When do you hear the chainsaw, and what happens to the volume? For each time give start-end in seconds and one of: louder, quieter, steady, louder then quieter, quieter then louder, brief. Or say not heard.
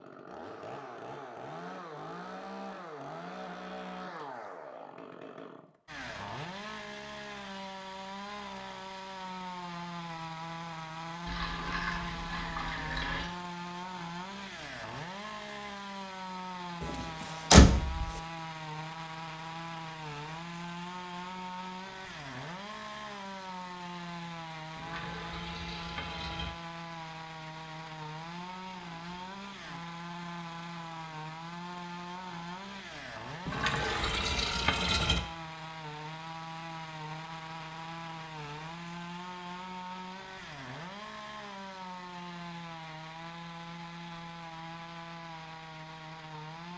0.0-46.7 steady.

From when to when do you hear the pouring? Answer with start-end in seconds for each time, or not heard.
11.2-13.2, 24.8-26.5, 33.5-35.2.